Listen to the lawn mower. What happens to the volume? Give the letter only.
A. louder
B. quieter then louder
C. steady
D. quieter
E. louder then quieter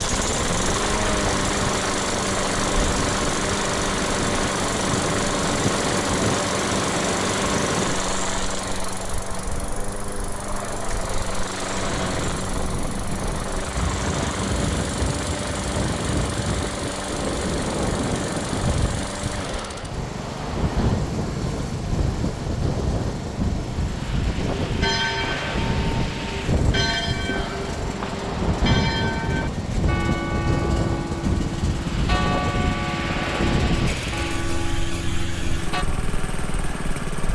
D.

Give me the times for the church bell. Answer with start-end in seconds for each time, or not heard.
24.4-35.9.